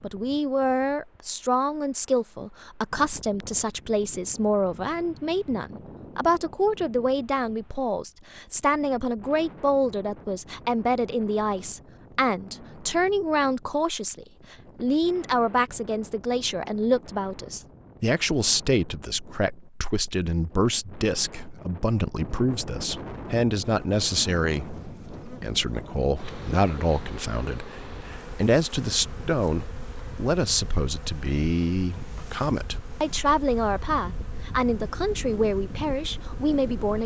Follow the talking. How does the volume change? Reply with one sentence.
The volume of the talking stays about the same.